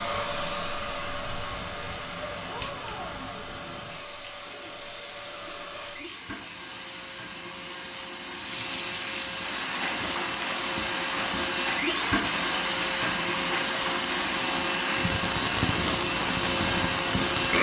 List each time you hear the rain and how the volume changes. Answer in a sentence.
You can hear the rain from 0.0 to 17.5 s, getting louder.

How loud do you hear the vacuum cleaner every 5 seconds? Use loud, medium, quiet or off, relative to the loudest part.
medium, medium, loud, loud.